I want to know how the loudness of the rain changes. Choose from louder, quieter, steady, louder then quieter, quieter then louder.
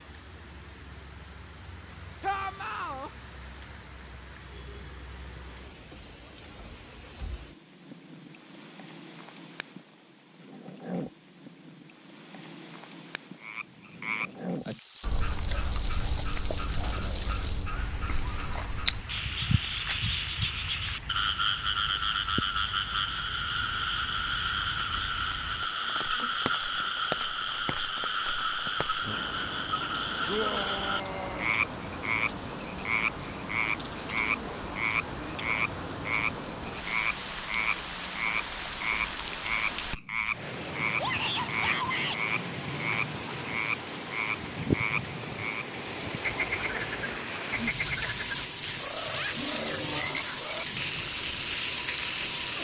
louder.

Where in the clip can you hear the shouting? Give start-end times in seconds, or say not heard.
2.2-3.1, 30.2-31.6, 41.0-42.2.